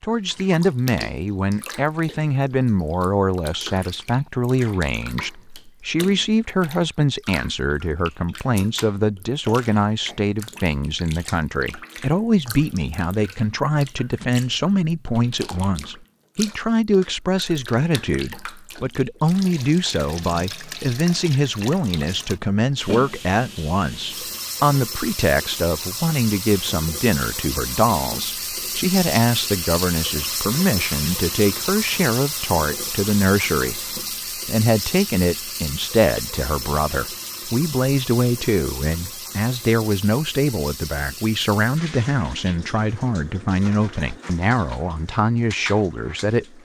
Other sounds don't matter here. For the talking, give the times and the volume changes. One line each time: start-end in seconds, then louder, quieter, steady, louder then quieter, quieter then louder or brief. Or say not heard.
0.0-46.5 steady.